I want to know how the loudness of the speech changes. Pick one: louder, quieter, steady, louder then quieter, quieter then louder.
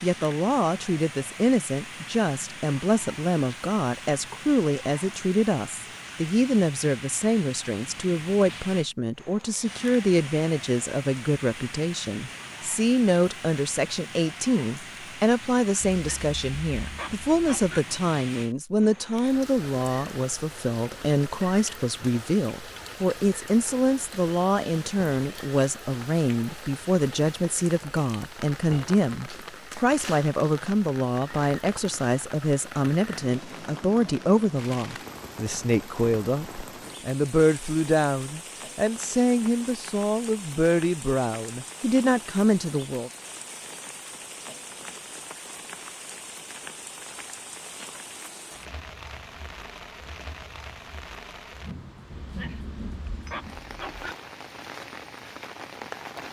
steady.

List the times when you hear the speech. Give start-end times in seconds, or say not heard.
0.0-43.1.